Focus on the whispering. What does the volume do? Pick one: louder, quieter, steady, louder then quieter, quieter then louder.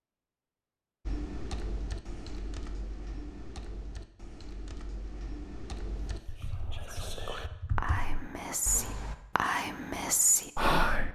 louder.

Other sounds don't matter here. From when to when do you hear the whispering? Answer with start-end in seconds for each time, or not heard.
6.0-11.0.